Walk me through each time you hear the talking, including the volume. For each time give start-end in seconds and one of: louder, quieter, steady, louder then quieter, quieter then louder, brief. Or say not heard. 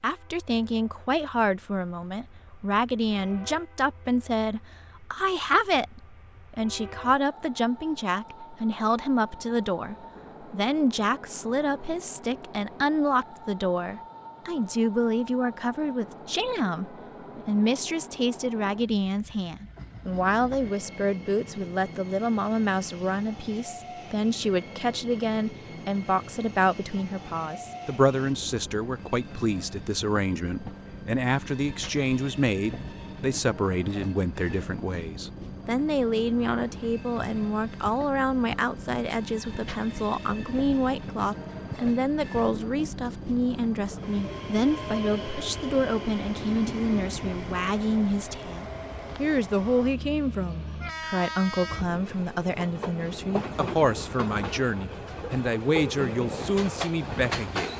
0.0-57.7 steady.